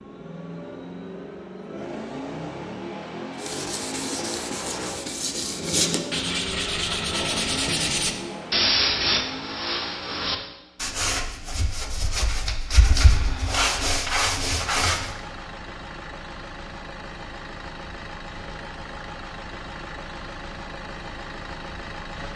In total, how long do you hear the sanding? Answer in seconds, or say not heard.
12 s.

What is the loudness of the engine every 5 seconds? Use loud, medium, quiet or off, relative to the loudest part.
loud, loud, medium, loud, loud.